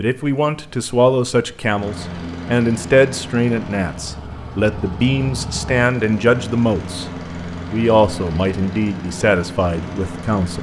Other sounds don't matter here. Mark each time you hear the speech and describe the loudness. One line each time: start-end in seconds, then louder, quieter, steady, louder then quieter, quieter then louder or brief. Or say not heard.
0.0-7.1 steady
7.7-10.5 brief.